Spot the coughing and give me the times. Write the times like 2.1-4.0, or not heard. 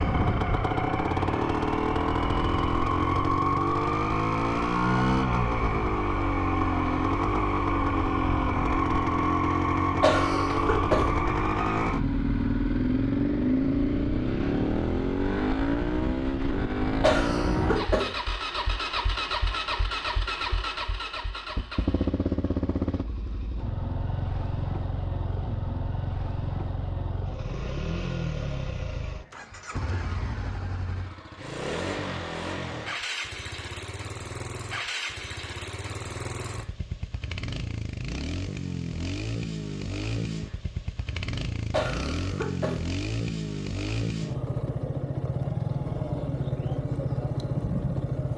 10.0-11.2, 17.0-18.1, 41.7-42.9.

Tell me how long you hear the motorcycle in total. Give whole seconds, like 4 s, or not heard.
48 s.